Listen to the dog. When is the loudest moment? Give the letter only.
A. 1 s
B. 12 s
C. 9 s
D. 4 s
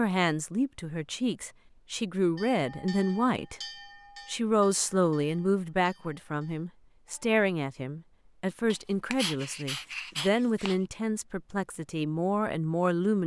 C.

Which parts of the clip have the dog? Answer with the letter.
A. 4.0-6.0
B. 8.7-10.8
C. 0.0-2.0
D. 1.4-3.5
B.